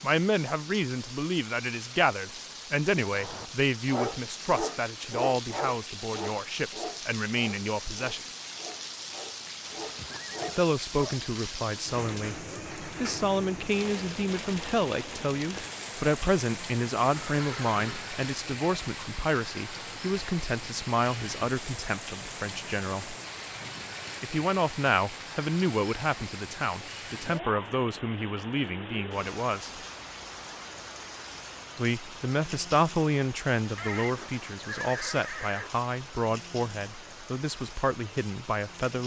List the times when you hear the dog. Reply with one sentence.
The dog can be heard from 3.0 to 11.2 s.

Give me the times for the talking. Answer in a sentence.
You can hear the talking from 0.0 to 8.2 s, from 10.6 to 23.1 s, from 24.2 to 29.7 s and from 31.8 to 39.0 s.